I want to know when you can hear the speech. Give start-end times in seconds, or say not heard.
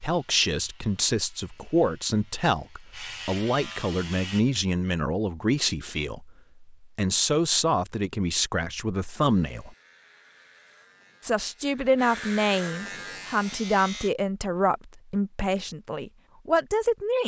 0.0-9.8, 11.2-17.2.